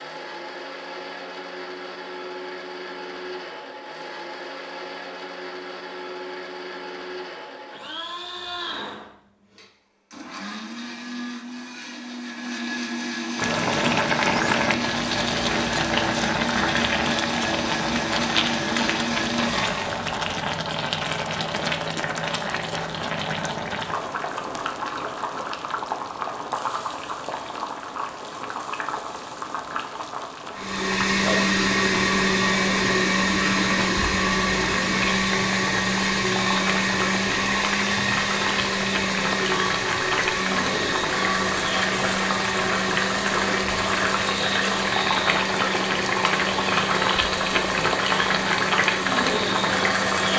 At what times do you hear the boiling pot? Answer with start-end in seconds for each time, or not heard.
13.3-50.3.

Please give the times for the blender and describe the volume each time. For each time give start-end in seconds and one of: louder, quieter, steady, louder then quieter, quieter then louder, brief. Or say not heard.
0.0-20.1 louder
30.6-50.3 quieter.